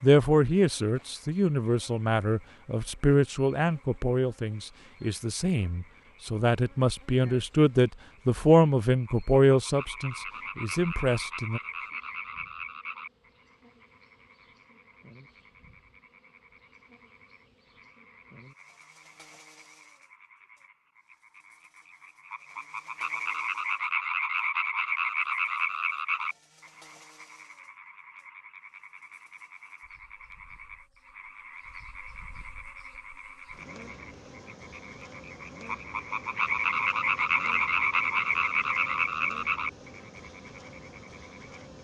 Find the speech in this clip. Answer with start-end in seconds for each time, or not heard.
0.0-11.6.